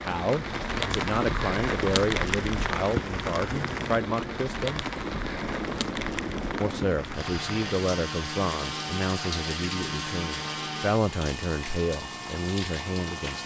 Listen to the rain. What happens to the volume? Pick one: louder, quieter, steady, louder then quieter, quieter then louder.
quieter.